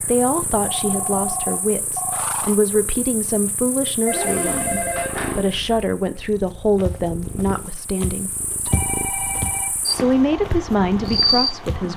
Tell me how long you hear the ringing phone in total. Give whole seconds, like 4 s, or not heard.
5 s.